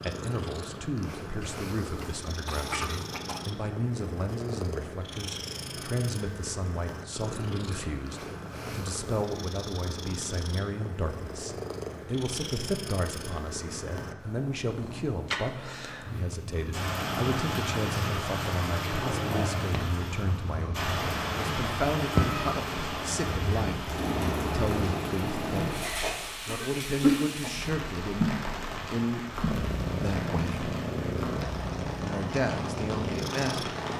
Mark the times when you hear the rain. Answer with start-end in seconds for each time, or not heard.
16.7-33.9.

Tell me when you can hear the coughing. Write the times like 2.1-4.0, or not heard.
1.4-3.4, 26.0-27.5.